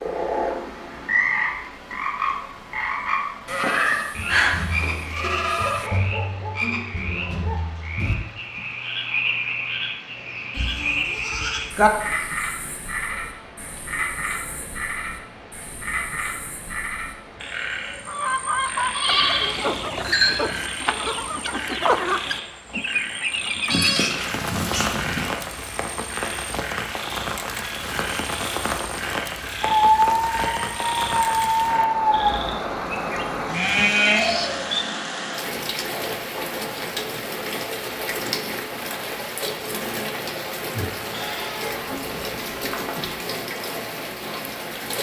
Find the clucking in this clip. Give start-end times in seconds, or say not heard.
18.1-23.9.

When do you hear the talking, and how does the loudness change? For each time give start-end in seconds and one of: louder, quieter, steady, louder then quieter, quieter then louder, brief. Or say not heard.
not heard.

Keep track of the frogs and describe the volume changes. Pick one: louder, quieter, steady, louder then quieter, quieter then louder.
quieter.